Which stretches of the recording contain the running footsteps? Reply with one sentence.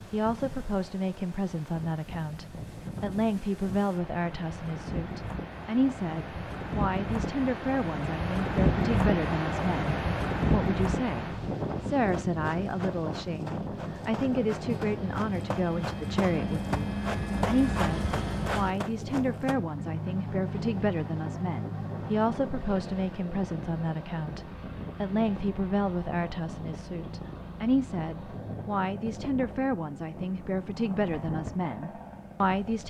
You can hear the running footsteps from 12.1 to 19.6 s.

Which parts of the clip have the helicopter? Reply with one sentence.
You can hear the helicopter from 13.7 to 32.8 s.